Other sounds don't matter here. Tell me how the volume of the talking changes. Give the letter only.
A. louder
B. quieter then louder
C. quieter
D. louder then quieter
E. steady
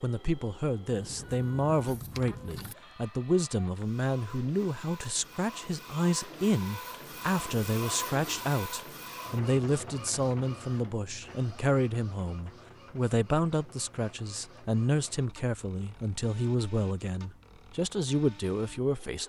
E.